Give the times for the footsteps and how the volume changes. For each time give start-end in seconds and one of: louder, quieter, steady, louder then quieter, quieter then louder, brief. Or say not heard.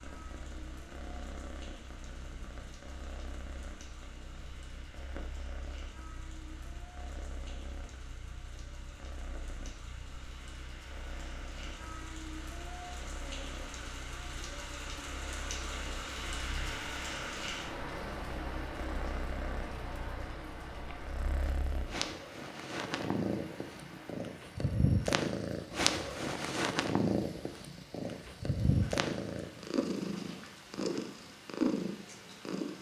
not heard.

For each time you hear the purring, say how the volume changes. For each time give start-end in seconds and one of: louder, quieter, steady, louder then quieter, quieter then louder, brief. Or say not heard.
0.0-32.7 louder.